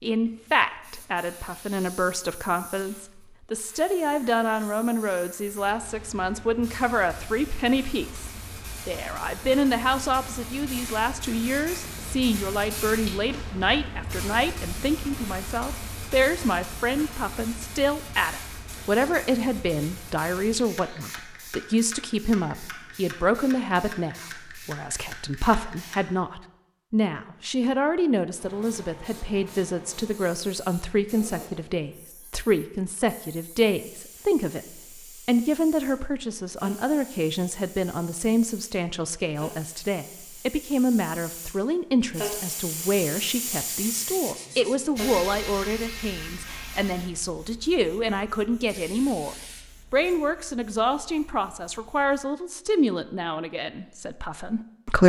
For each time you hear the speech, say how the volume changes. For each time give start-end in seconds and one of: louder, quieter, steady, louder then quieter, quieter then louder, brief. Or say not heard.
0.0-55.0 steady.